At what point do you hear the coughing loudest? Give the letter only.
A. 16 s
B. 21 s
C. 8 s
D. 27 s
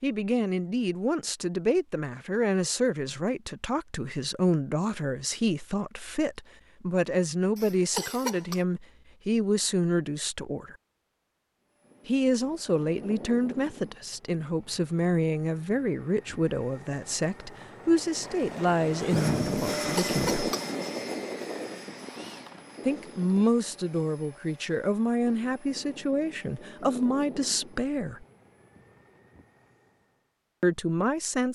C.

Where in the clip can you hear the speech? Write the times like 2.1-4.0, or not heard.
0.0-10.8, 12.1-20.4, 22.9-28.2, 30.6-31.5.